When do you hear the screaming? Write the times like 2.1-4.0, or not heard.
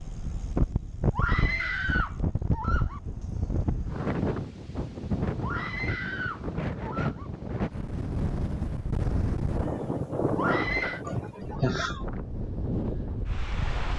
1.1-3.0, 5.4-7.3, 10.3-11.1.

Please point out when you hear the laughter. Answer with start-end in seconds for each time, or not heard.
11.0-12.1.